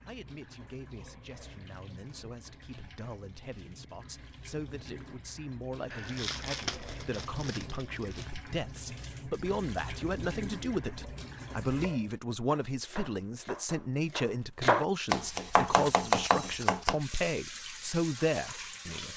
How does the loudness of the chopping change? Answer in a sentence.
The loudness of the chopping goes up.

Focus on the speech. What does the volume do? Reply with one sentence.
The loudness of the speech goes up.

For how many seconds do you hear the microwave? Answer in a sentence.
The microwave can't be heard in this clip.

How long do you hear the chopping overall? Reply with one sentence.
You can hear the chopping for 6 seconds altogether.